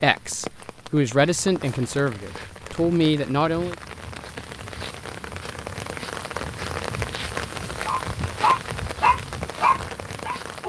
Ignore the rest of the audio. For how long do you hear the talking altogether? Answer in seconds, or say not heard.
4 s.